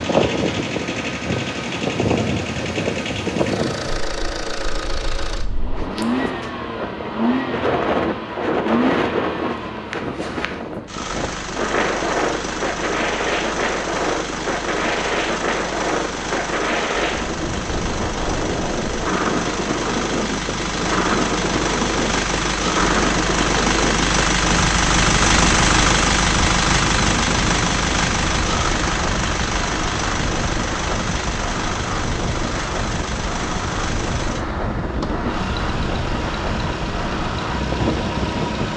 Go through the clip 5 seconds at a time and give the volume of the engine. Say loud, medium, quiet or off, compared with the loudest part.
medium, medium, medium, medium, loud, loud, medium, medium.